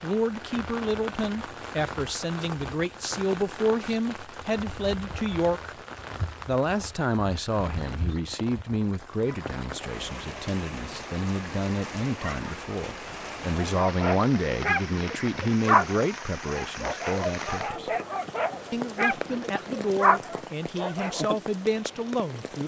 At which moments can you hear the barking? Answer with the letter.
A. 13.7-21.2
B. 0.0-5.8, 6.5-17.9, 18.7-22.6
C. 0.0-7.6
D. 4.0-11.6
A.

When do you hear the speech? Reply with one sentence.
The speech can be heard from 0.0 to 5.8 s, from 6.5 to 17.9 s and from 18.7 to 22.6 s.